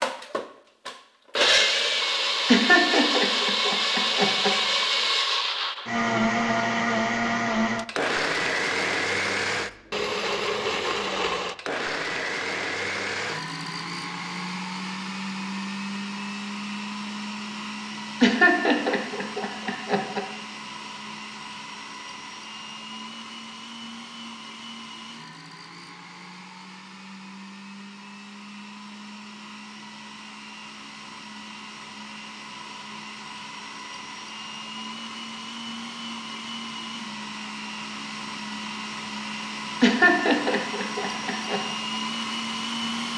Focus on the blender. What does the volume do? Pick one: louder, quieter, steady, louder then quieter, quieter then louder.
quieter then louder.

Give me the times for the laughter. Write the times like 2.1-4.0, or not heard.
2.5-4.5, 18.2-20.2, 39.8-41.6.